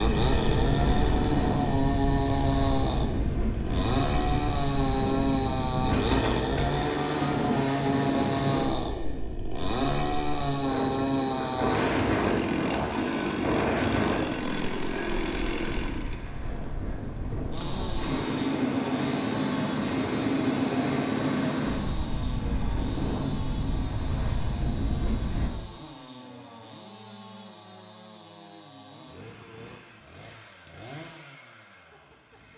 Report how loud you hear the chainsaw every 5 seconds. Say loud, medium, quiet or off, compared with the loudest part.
loud, loud, loud, medium, quiet, quiet, quiet.